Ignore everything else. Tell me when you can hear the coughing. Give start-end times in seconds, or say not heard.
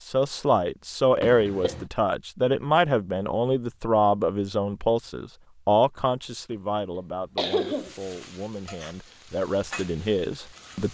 1.2-1.9, 6.5-8.0.